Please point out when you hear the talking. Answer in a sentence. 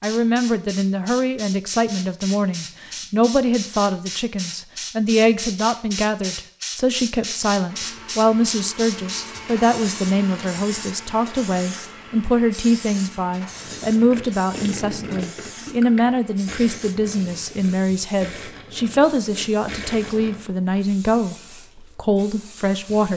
The talking can be heard from 0.0 to 21.4 s and from 21.9 to 23.1 s.